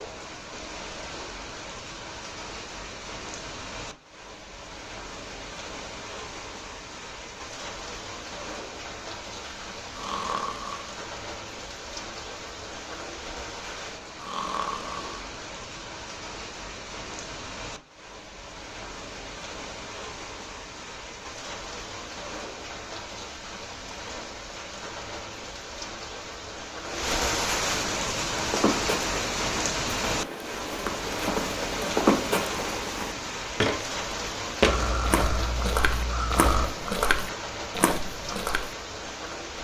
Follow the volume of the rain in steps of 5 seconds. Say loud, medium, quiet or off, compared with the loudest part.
medium, medium, medium, medium, medium, loud, loud, medium.